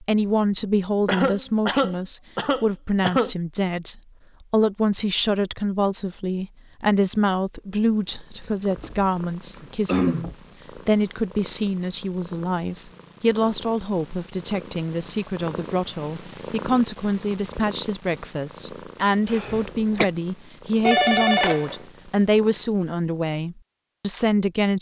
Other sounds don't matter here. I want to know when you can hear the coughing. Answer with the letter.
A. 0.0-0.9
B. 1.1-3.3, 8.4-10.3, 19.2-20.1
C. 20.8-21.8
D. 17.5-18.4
B.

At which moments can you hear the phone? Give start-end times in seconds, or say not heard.
20.8-21.8.